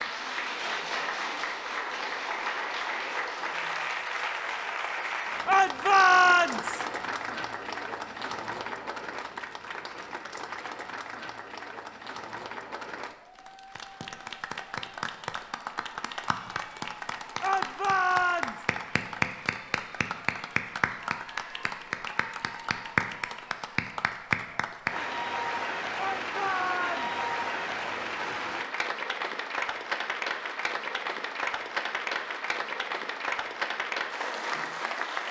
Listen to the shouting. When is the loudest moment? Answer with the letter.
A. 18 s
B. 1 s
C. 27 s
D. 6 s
D.